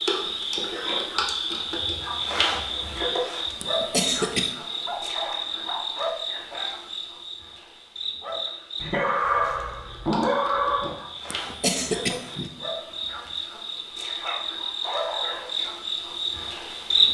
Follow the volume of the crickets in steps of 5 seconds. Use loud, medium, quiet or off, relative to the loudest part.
loud, medium, medium, loud.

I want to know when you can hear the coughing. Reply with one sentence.
The coughing can be heard from 3.6 to 4.5 s and from 11.3 to 12.5 s.